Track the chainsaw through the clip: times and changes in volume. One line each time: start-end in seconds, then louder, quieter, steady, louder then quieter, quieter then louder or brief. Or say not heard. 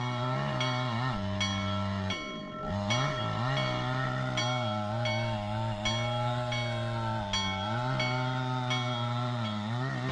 0.0-10.0 steady.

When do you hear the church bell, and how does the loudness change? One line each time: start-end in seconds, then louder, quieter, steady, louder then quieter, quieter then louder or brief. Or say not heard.
0.0-9.7 steady.